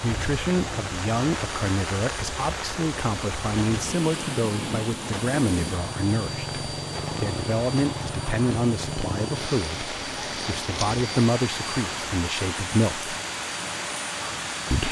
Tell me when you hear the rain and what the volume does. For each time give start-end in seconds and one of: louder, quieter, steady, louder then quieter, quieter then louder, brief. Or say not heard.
0.0-14.8 steady.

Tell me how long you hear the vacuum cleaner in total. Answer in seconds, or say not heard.
15 s.